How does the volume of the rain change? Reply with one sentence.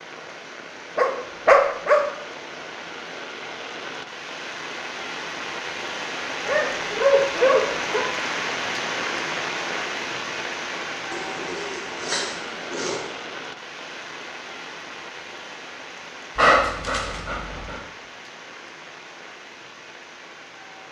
The loudness of the rain goes up, then down.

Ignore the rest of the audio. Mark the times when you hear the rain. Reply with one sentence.
The rain can be heard from 0.0 to 20.8 s.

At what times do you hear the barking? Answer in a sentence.
The barking can be heard from 0.9 to 2.0 s, from 6.5 to 8.1 s, from 11.1 to 13.1 s and from 16.4 to 17.8 s.